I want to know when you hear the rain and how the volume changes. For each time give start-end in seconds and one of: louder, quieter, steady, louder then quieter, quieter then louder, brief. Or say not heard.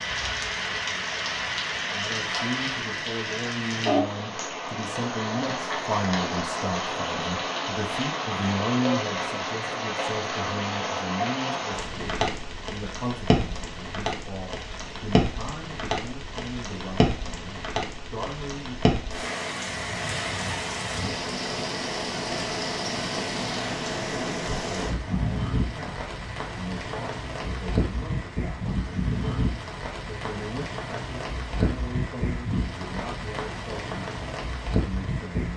0.0-35.5 steady.